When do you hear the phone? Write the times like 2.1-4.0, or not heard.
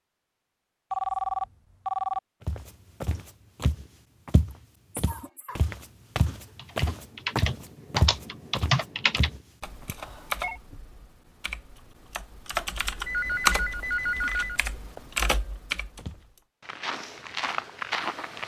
0.9-2.2, 9.9-10.6, 13.1-15.0.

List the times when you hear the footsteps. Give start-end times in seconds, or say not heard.
2.5-9.9, 15.9-18.4.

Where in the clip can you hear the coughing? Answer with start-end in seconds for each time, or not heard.
4.4-5.7.